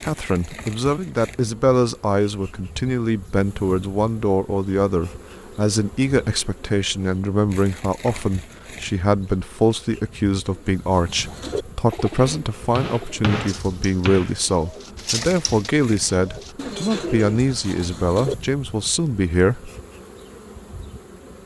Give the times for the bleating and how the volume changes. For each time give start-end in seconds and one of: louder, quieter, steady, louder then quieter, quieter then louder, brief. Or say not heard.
not heard.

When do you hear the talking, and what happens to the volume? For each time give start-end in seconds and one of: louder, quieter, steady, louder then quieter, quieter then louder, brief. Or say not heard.
0.0-19.7 steady.